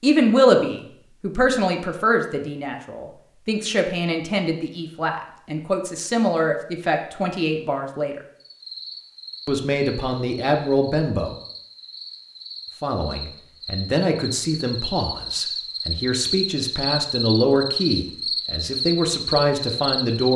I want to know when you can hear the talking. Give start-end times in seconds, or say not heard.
0.0-8.2, 9.4-11.3, 12.8-20.3.